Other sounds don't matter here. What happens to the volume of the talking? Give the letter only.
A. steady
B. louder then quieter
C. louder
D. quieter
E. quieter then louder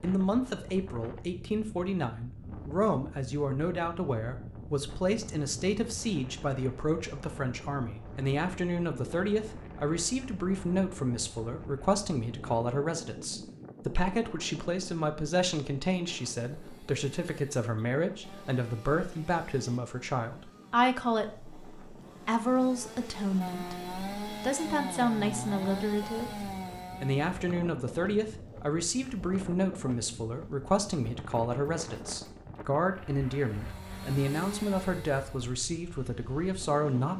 A.